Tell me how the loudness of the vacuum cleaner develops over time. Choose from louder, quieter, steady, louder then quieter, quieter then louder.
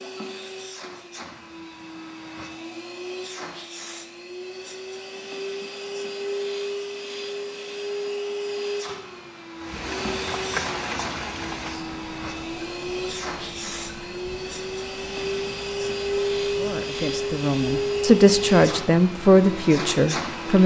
louder.